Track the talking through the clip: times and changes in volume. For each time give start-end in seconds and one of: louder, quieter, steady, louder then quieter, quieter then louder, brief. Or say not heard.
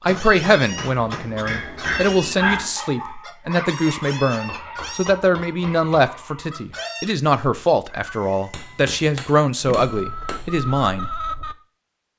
0.0-11.1 steady.